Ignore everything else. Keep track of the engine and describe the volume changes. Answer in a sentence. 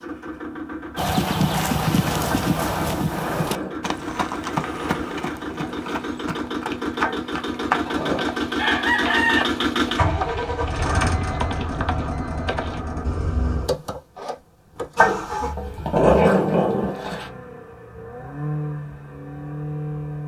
The volume of the engine goes up, then down.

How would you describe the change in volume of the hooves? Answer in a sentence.
The loudness of the hooves goes down.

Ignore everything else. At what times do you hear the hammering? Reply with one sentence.
You can't hear the hammering here.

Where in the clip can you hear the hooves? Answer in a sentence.
You can hear the hooves from 0.9 to 12.8 s.